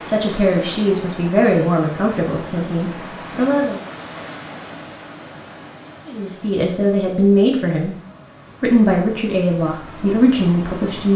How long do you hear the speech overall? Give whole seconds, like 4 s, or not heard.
8 s.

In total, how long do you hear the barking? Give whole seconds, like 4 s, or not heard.
not heard.